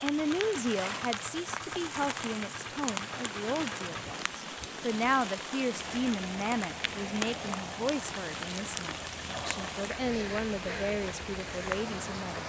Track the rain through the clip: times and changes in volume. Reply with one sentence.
The rain can be heard from 0.0 to 12.4 s, at a steady volume.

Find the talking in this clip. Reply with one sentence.
You can hear the talking from 0.0 to 12.4 s.